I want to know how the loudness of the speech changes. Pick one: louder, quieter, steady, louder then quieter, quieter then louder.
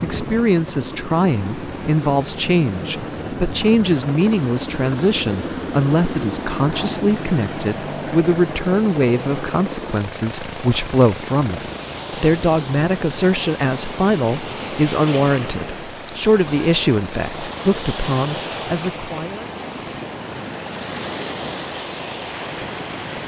steady.